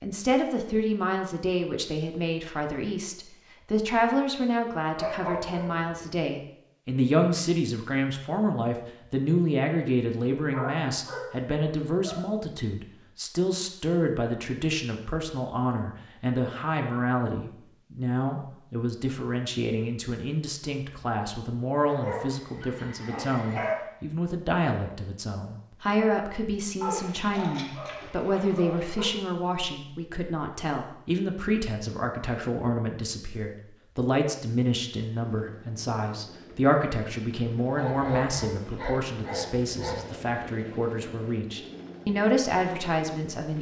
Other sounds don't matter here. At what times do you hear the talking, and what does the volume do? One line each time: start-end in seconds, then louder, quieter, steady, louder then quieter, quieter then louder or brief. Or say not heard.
0.0-43.5 steady.